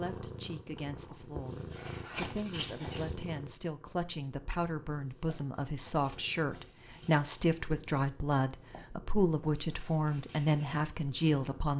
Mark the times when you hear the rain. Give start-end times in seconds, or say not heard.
not heard.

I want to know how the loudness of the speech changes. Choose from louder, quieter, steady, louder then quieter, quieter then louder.
louder.